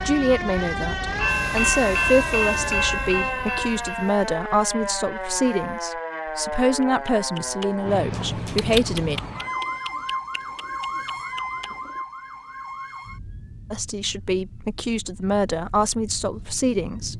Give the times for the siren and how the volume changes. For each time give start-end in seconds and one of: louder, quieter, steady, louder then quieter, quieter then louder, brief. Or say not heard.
0.0-17.1 quieter.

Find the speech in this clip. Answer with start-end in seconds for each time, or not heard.
0.0-9.2, 13.7-17.1.